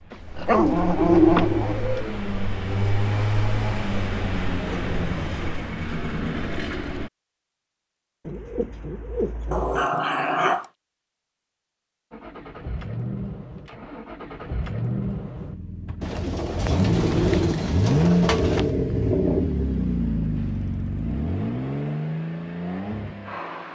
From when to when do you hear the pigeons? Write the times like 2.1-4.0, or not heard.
0.5-2.0, 8.2-9.8, 16.0-18.8.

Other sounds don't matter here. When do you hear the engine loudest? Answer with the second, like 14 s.
18 s.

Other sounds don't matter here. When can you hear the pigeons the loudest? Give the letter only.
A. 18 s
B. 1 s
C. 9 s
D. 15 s
B.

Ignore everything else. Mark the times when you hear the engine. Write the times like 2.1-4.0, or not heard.
0.0-7.1, 12.1-23.6.